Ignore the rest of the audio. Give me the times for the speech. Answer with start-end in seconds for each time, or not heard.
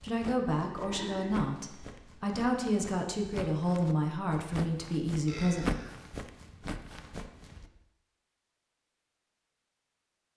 0.0-5.8.